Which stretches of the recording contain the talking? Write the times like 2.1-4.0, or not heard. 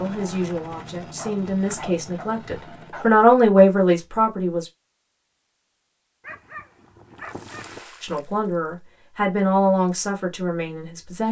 0.0-4.7, 8.0-11.2.